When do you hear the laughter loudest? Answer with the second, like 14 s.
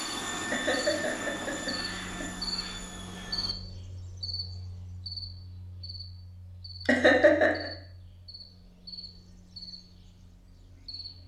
7 s.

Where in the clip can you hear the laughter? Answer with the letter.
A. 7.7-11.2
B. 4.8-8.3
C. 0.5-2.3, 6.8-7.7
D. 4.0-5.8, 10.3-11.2
C.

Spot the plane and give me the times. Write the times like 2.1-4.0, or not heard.
0.0-3.5.